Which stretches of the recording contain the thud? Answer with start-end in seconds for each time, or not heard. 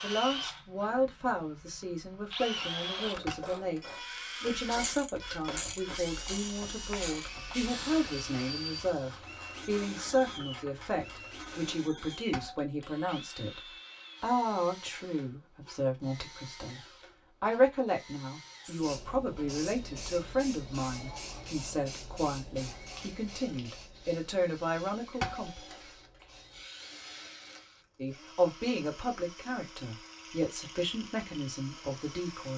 3.2-4.0, 12.3-13.1, 25.2-25.9.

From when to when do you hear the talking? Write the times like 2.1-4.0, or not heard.
0.0-16.8, 17.4-25.6, 27.9-32.5.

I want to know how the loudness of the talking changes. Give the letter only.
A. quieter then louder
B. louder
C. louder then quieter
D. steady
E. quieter
D.